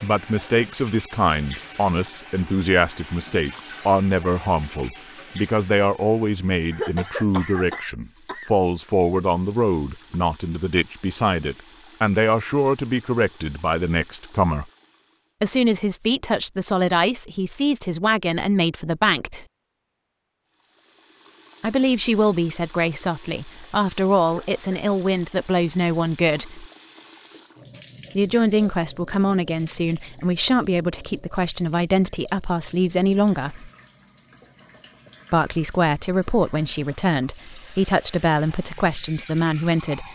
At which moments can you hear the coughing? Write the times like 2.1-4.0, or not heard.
6.7-8.5, 24.2-24.9.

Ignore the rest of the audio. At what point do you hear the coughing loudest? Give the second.
7 s.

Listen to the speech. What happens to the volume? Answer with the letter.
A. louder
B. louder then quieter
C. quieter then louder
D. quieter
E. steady
E.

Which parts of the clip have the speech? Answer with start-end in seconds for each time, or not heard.
0.0-14.7, 15.4-19.4, 21.6-26.6, 28.1-33.7, 35.3-40.1.